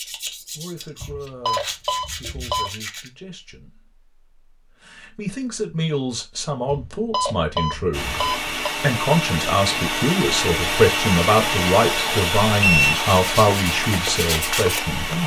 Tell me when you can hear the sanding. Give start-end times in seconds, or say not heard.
0.0-3.1, 12.9-15.2.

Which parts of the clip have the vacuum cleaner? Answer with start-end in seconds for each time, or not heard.
7.9-15.2.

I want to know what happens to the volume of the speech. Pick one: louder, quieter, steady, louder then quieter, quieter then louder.
louder.